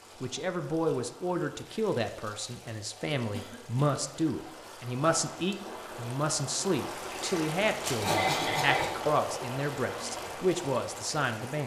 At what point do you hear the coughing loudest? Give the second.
8 s.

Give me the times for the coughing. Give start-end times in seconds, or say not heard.
3.1-4.0, 8.0-8.9.